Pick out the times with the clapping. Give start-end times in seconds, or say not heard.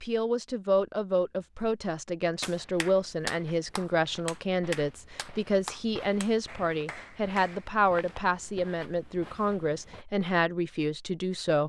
2.4-7.7.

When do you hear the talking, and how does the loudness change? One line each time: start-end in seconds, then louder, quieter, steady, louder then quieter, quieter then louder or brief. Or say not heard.
0.0-11.6 steady.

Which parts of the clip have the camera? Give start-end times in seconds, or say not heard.
not heard.